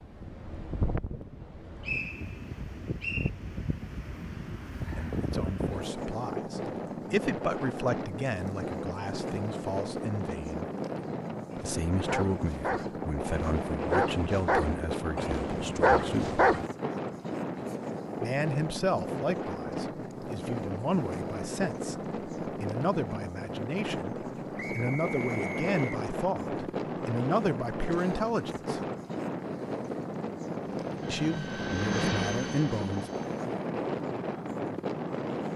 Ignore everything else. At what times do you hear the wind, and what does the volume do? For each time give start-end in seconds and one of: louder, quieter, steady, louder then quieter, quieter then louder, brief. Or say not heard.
0.0-35.5 steady.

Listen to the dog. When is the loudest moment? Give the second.
16 s.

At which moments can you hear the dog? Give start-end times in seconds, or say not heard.
11.5-16.7.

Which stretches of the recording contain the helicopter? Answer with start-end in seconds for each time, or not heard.
30.8-33.5.